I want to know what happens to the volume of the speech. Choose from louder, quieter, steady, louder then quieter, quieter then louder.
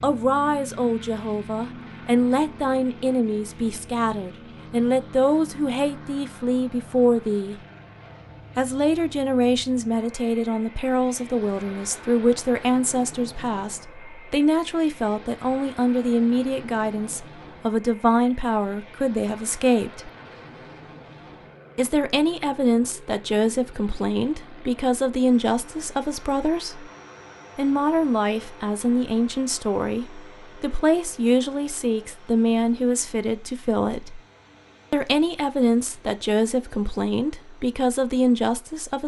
steady.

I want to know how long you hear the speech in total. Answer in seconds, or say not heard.
35 s.